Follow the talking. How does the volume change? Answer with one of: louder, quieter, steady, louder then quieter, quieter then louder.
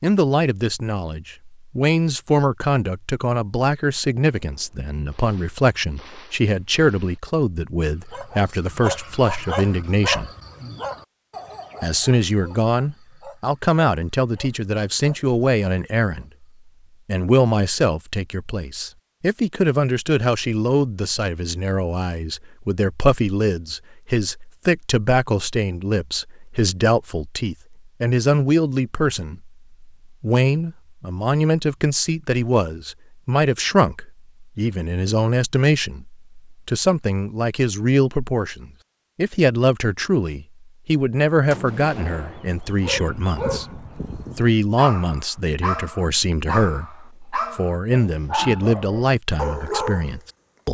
steady.